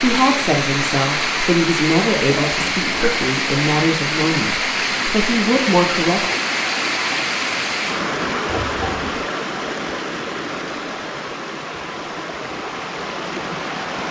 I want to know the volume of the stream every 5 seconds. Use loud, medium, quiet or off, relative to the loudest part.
loud, loud, medium.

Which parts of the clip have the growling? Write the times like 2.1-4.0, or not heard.
2.3-3.1, 8.4-9.2.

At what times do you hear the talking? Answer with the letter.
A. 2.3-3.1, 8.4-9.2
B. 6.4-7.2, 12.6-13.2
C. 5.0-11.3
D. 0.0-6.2
D.